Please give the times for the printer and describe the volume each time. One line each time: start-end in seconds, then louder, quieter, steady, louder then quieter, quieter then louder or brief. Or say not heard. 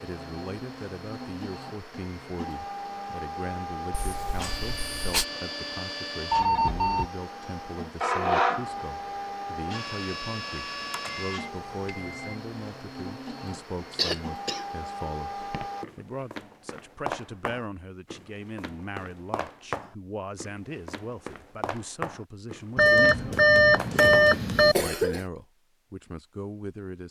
0.0-15.8 louder then quieter.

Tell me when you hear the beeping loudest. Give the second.
24 s.